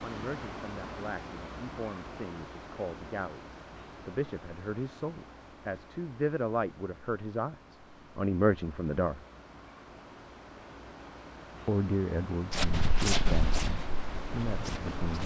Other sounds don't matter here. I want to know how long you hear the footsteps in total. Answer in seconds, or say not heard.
3 s.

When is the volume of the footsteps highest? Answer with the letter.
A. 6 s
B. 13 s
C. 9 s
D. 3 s
B.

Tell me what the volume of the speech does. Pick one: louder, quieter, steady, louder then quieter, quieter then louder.
louder then quieter.